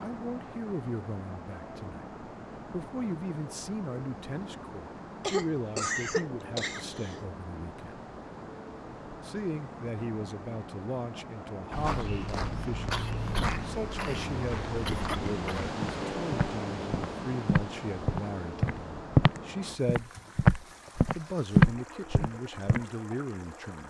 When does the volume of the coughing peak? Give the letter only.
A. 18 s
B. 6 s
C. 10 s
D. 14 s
B.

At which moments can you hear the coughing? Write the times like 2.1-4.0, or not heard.
5.2-7.2, 12.9-15.6.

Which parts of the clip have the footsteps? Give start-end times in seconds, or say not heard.
11.7-22.8.